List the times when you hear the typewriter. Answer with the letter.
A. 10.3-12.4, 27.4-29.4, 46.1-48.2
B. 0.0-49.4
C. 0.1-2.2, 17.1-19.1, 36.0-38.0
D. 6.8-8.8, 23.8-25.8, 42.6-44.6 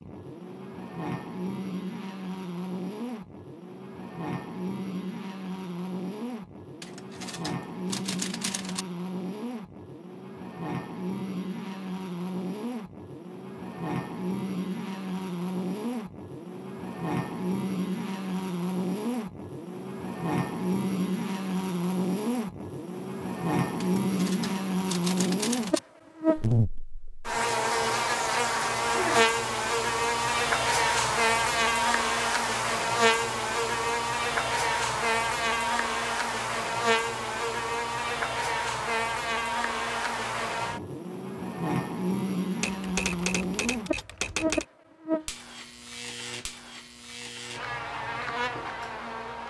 D.